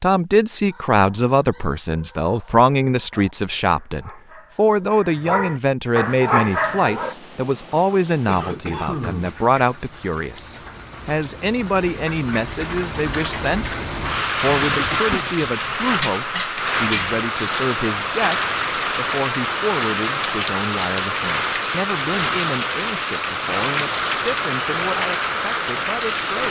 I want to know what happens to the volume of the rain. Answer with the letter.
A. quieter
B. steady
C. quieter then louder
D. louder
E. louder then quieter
D.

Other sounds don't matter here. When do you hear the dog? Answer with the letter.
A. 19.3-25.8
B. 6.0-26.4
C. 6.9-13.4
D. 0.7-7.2
D.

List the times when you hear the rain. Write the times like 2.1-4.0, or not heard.
6.0-26.4.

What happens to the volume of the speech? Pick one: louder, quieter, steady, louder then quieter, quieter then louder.
quieter.